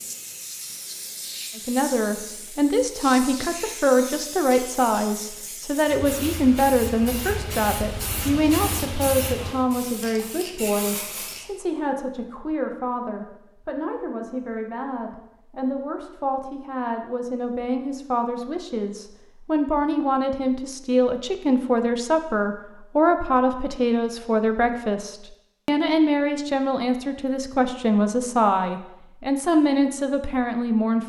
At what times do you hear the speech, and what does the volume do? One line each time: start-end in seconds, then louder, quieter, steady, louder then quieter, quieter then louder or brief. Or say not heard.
1.6-31.0 quieter then louder.